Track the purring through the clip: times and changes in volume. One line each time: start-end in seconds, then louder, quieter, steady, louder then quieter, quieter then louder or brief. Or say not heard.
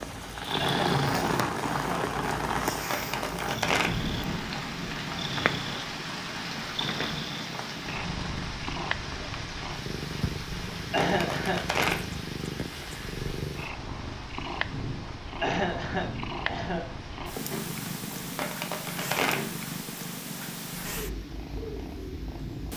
0.0-22.7 steady.